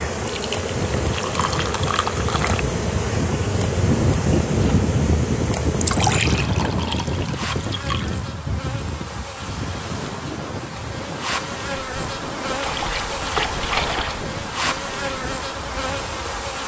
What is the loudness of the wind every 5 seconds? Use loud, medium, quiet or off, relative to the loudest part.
loud, loud, medium, quiet.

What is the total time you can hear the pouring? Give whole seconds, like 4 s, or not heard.
6 s.